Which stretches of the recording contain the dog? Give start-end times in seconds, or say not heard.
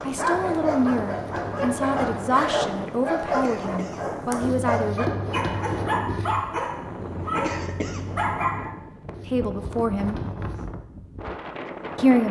0.0-8.8.